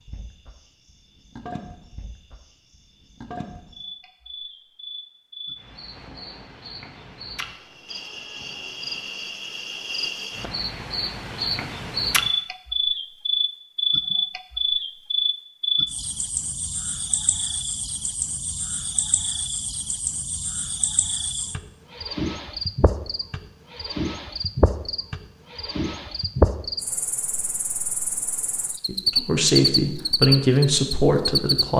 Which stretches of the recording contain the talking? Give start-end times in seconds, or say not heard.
28.9-31.7.